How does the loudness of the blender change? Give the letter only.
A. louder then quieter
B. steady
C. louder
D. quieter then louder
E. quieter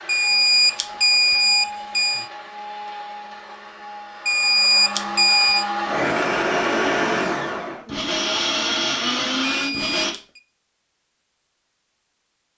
C.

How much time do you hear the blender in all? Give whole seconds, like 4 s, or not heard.
10 s.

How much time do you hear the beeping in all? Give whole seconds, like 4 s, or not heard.
5 s.